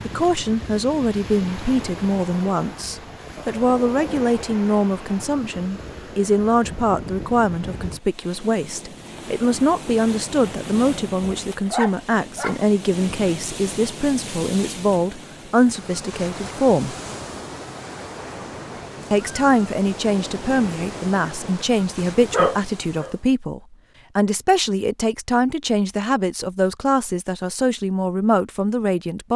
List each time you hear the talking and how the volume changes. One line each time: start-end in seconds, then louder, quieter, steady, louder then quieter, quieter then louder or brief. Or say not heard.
0.1-16.9 steady
19.1-29.3 steady.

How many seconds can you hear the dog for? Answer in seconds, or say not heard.
2 s.